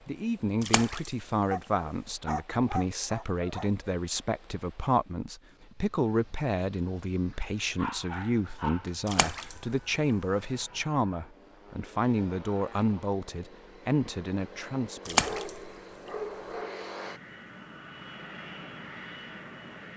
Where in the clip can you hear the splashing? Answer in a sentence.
The splashing can be heard from 0.6 to 1.2 s, from 9.1 to 9.7 s and from 15.1 to 15.7 s.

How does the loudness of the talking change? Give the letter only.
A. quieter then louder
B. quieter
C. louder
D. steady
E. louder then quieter
D.